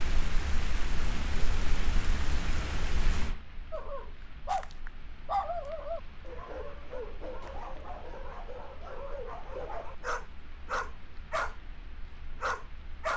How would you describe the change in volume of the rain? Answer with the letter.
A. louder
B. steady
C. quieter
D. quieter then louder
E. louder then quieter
C.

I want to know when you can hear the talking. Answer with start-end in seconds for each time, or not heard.
not heard.